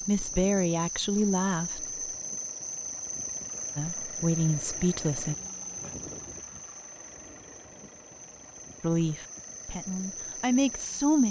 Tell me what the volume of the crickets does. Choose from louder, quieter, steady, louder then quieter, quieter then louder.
quieter then louder.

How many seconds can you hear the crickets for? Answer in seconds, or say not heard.
11 s.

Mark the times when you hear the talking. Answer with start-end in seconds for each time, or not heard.
0.0-1.9, 3.8-5.3, 8.8-11.2.